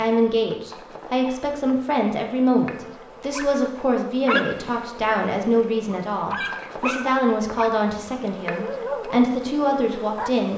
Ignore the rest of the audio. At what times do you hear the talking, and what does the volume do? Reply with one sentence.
You can hear the talking from 0.0 to 10.5 s, at a steady volume.